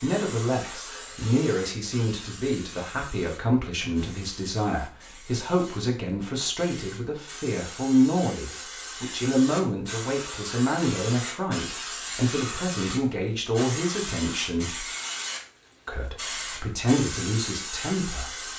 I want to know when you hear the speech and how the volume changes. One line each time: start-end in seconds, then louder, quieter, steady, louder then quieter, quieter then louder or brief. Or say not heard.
0.0-14.8 steady
15.8-18.5 brief.